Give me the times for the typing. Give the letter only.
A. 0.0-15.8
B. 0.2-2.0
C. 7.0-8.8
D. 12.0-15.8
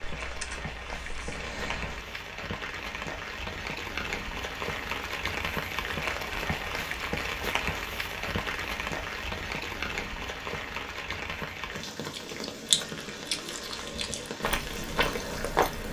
B.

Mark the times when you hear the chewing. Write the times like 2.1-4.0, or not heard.
12.0-15.8.